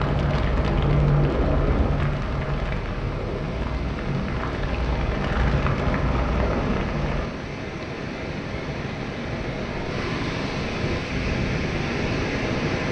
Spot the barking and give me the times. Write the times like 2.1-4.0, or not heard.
not heard.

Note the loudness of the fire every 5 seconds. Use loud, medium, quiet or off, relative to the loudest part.
loud, loud, off.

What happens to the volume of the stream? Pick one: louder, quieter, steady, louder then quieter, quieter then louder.
louder.